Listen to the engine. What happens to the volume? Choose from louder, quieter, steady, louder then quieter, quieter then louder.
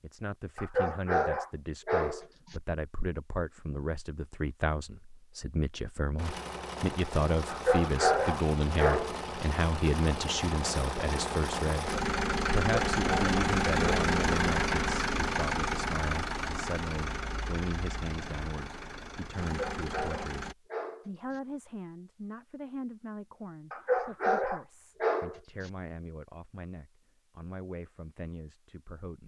louder then quieter.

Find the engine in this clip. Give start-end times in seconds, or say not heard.
6.2-20.6.